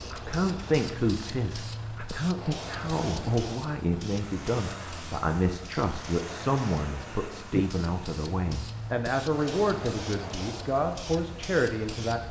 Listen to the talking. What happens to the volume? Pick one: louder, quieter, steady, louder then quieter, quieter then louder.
steady.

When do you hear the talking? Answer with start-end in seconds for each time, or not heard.
0.0-12.2.